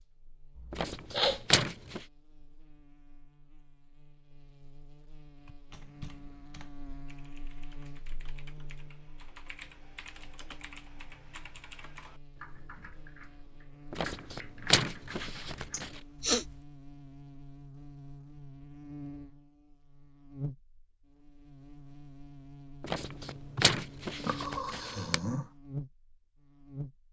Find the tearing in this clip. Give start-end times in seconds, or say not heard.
0.7-2.0, 13.9-15.9, 22.8-25.2.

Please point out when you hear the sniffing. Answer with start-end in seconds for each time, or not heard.
0.6-1.6, 15.7-16.4, 23.6-25.5.